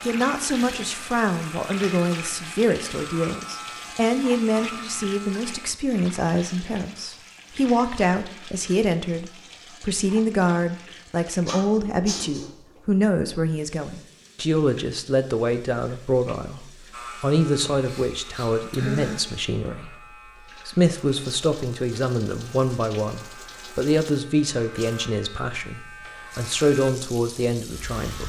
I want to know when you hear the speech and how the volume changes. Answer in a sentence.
You can hear the speech from 0.0 to 28.2 s, at a steady volume.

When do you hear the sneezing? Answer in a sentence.
You can hear the sneezing from 11.4 to 12.4 s and from 17.7 to 19.2 s.